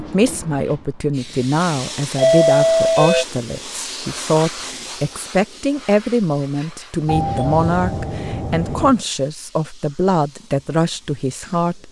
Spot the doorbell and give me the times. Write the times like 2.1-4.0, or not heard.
2.1-3.2, 7.0-9.0.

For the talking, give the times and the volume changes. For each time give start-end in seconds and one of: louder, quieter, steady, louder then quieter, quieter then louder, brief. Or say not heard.
0.0-11.8 steady.